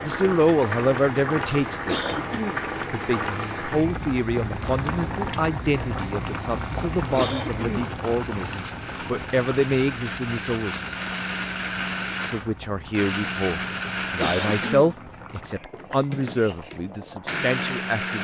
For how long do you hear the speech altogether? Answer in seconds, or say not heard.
16 s.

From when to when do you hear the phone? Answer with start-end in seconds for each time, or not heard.
not heard.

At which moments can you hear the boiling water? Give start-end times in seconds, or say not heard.
0.0-17.9.